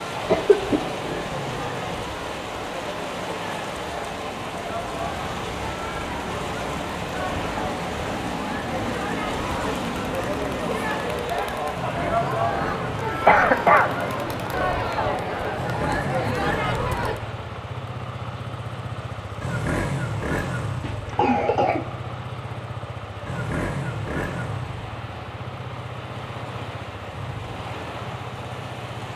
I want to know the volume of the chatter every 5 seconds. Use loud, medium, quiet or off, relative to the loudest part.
medium, medium, loud, loud, off, off.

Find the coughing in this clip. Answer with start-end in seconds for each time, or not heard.
0.2-0.8, 13.2-13.9, 20.8-22.1.